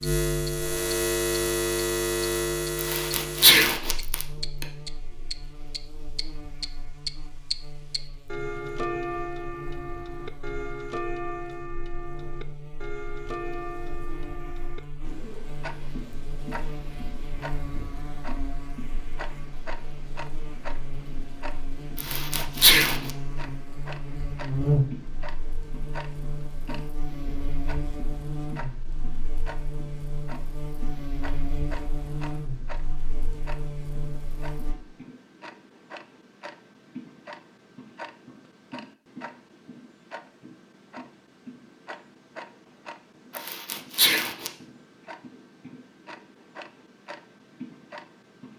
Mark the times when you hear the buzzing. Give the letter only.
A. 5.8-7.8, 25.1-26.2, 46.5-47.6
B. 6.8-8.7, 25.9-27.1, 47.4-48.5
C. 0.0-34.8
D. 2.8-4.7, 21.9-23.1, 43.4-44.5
C.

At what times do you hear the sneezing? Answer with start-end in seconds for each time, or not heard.
2.8-4.7, 21.9-23.1, 43.4-44.5.